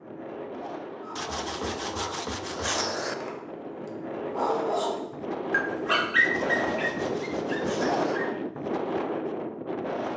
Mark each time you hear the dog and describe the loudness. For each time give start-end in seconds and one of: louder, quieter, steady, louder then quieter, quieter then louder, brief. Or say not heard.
1.0-8.3 louder then quieter.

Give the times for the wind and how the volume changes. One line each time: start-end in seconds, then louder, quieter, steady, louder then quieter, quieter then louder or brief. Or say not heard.
0.0-10.1 louder.